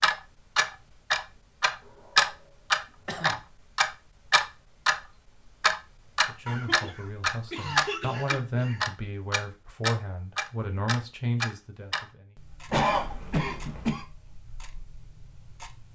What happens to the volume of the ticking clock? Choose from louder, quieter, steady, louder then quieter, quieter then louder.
quieter.